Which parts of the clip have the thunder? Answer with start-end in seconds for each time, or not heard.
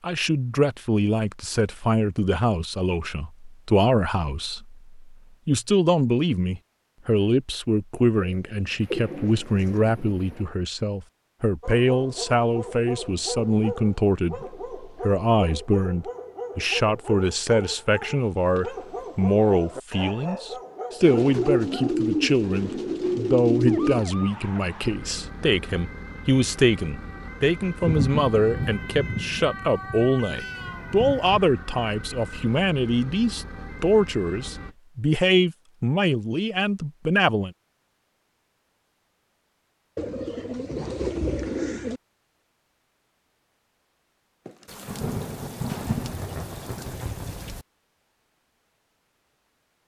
8.8-10.4, 27.8-31.4, 44.5-47.6.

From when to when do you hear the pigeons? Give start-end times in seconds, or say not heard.
8.2-9.9, 21.1-24.1, 40.0-42.0.